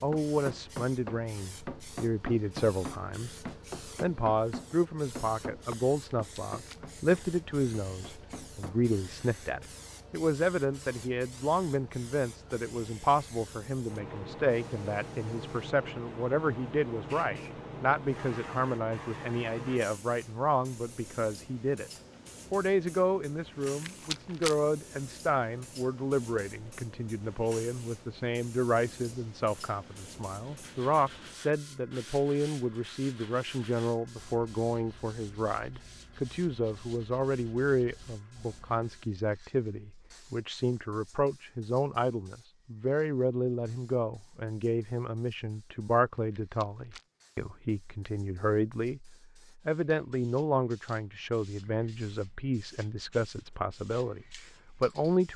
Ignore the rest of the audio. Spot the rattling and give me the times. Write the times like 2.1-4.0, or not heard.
5.9-6.8, 23.6-24.6, 46.1-47.0.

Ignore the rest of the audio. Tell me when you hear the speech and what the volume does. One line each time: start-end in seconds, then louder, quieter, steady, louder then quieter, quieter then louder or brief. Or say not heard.
0.0-21.9 steady
22.5-55.3 steady.